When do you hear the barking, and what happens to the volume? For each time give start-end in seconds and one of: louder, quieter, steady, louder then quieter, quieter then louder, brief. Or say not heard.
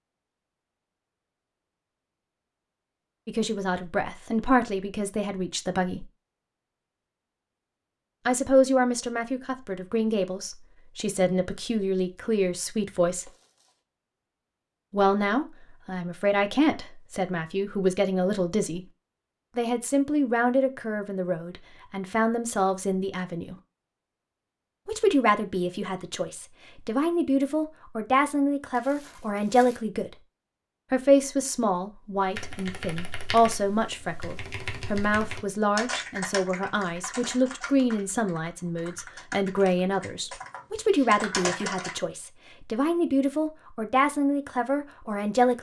not heard.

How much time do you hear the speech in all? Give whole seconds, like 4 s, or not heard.
36 s.